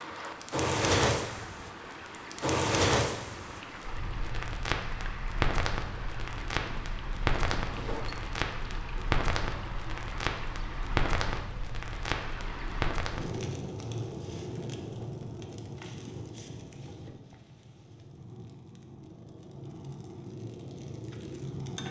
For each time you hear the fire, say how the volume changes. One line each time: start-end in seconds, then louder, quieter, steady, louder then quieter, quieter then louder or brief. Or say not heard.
0.1-21.8 quieter.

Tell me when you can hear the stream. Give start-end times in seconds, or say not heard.
0.0-13.0.